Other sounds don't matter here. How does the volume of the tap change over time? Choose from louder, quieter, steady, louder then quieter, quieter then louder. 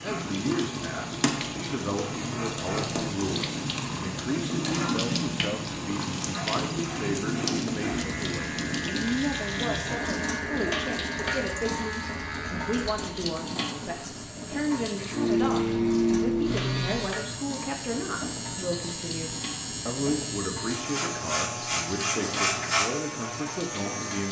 quieter.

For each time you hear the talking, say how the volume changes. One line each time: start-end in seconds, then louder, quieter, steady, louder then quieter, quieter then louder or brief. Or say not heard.
0.0-24.2 steady.